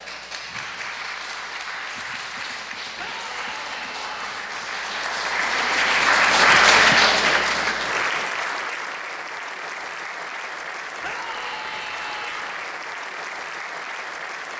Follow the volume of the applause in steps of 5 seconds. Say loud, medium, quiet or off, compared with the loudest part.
quiet, loud, quiet.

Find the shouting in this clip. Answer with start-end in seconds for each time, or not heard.
3.0-4.5, 11.0-12.7.